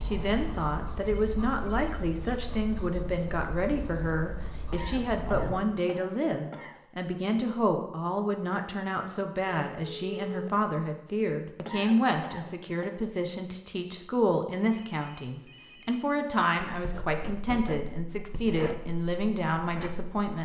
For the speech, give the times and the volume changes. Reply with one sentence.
You can hear the speech from 0.0 to 20.4 s, at a steady volume.